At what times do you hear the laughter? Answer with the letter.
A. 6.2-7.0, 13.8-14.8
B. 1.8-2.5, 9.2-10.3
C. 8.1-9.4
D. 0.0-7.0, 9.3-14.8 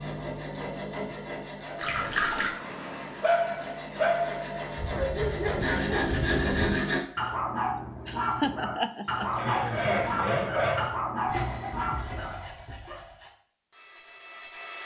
C.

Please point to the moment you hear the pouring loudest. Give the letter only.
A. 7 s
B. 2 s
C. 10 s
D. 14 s
B.